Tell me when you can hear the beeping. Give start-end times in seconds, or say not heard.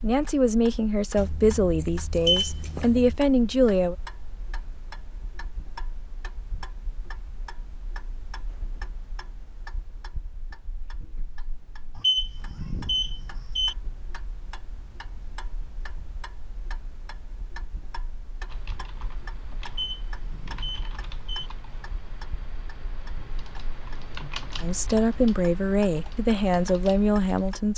2.1-2.8, 11.9-13.8, 19.6-21.5.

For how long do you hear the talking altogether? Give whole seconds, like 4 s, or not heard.
7 s.